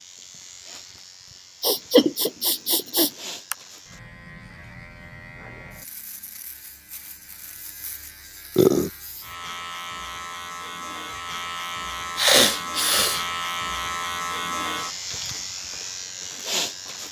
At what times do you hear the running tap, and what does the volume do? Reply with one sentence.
The running tap can't be heard in this clip.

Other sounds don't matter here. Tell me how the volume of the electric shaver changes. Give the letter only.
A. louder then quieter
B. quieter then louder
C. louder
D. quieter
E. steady
C.